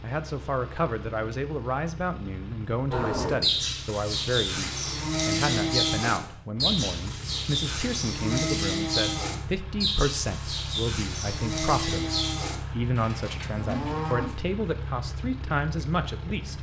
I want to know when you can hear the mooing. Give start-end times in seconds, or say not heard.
2.9-14.3.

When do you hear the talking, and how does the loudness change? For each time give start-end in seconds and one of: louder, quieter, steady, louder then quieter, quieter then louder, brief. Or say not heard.
0.0-16.5 steady.